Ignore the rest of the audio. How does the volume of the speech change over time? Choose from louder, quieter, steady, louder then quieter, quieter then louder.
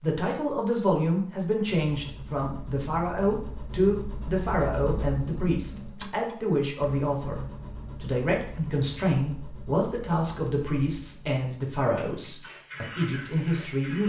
steady.